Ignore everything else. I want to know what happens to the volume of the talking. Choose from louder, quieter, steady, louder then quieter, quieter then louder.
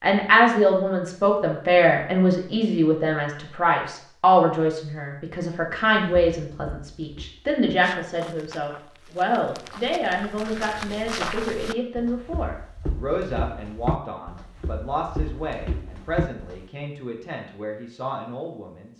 quieter.